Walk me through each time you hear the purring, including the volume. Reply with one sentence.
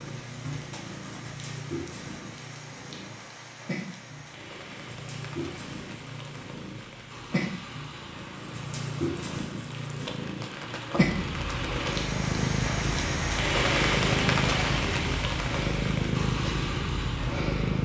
The purring can be heard from 0.0 to 17.8 s, getting louder.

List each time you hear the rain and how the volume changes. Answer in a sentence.
You can hear the rain from 0.0 to 17.8 s, getting louder.